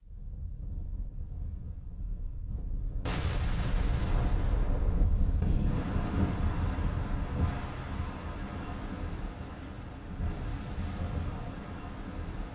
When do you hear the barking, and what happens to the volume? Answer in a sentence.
You can't hear the barking here.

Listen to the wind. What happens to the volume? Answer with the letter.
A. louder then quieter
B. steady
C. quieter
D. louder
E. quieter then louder
A.